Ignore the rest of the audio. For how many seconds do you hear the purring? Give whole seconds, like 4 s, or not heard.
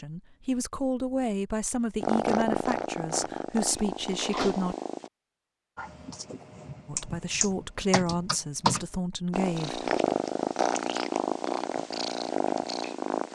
7 s.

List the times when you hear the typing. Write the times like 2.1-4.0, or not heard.
5.8-8.8.